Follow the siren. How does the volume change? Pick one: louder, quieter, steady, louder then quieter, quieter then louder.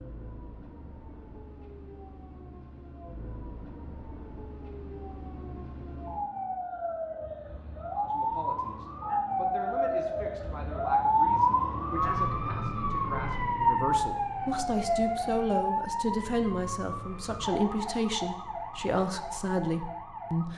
louder then quieter.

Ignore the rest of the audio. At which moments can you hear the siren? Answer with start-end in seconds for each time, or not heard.
0.0-20.5.